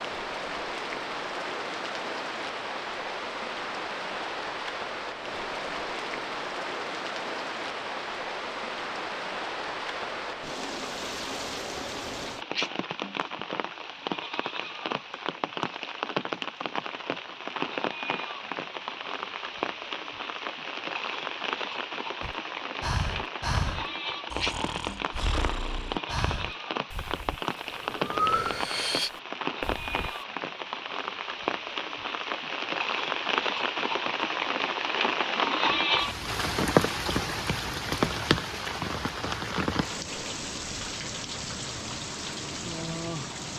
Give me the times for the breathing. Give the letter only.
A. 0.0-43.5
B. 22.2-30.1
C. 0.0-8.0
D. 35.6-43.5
B.